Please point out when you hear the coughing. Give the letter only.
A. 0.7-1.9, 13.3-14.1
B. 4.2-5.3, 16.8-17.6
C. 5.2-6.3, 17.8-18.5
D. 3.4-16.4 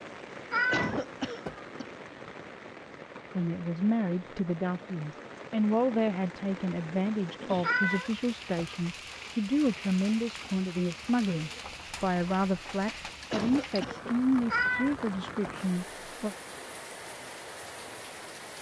A.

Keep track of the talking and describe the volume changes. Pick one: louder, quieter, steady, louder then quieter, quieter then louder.
steady.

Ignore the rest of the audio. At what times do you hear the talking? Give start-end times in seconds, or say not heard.
3.4-16.4.